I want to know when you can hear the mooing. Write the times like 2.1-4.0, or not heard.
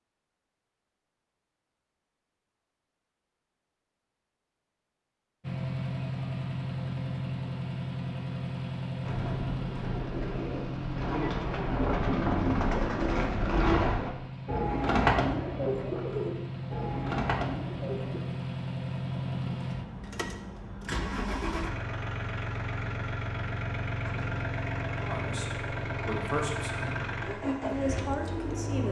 not heard.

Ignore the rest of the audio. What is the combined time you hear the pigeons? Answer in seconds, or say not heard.
9 s.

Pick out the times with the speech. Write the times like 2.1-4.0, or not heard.
25.0-28.8.